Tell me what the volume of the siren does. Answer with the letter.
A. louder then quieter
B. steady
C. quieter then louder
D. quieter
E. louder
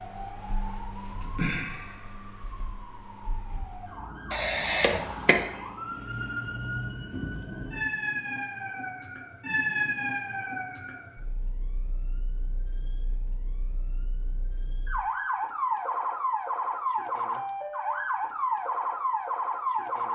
E.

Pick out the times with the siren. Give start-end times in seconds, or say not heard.
0.0-20.0.